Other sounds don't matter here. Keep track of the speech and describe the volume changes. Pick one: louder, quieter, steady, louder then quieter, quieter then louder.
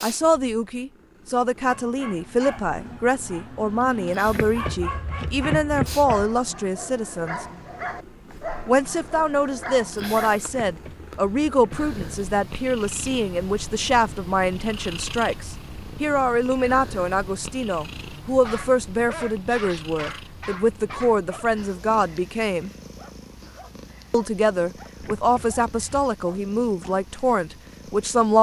steady.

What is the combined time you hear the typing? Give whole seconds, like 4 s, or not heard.
not heard.